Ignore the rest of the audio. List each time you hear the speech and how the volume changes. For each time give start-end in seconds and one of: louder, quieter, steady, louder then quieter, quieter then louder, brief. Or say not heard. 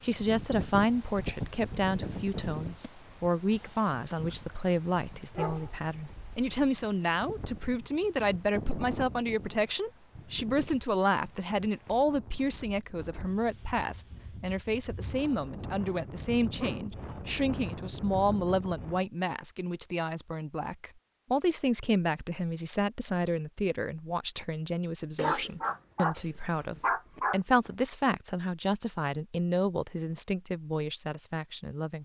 0.0-32.0 steady.